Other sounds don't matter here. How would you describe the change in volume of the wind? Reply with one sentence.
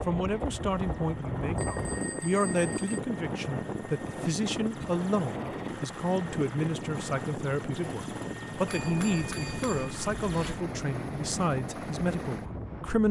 The volume of the wind goes down.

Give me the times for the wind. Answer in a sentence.
You can hear the wind from 0.0 to 13.0 s.